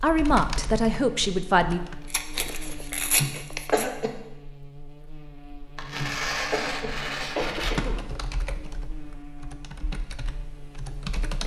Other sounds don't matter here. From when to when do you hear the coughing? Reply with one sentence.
The coughing can be heard from 3.1 to 4.2 s and from 6.0 to 8.0 s.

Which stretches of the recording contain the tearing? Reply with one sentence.
The tearing can be heard from 2.1 to 3.9 s and from 5.8 to 7.8 s.